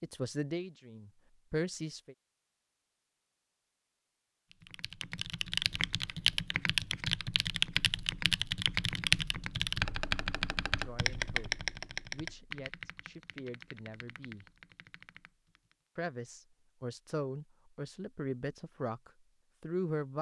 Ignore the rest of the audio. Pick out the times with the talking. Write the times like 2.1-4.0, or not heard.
0.0-2.1, 10.8-14.4, 15.9-20.1.